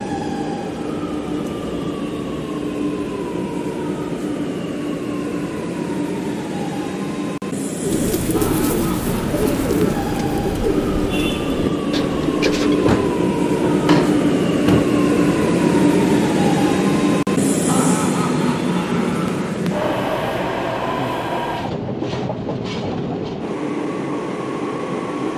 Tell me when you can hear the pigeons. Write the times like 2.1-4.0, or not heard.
7.8-12.9.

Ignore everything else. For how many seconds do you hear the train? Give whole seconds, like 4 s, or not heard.
25 s.